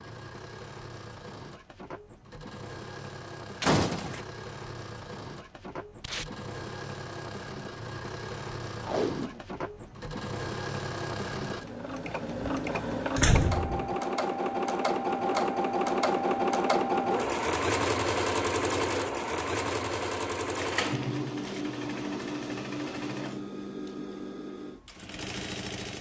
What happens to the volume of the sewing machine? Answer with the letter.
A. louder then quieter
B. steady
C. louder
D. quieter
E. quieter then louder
A.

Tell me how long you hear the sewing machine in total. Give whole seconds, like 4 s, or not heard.
26 s.